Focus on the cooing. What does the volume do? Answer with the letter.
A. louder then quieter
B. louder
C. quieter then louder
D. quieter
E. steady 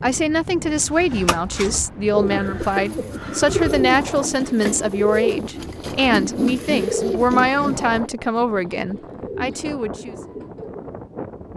D.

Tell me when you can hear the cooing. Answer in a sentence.
The cooing can be heard from 0.8 to 10.8 s.